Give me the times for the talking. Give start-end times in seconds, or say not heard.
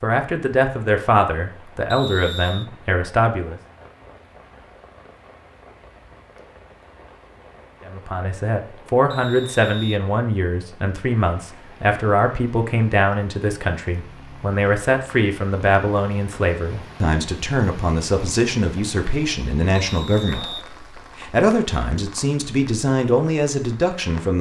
0.0-3.6, 7.8-24.3.